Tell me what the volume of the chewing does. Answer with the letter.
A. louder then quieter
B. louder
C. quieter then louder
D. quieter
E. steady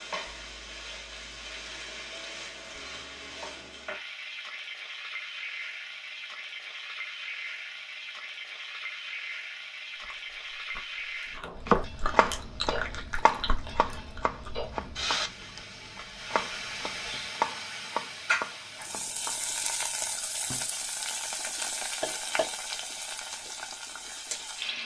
A.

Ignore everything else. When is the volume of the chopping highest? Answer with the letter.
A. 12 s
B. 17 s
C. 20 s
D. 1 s
A.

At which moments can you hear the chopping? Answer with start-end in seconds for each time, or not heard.
11.4-20.6.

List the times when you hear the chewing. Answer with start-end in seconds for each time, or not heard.
9.9-17.1.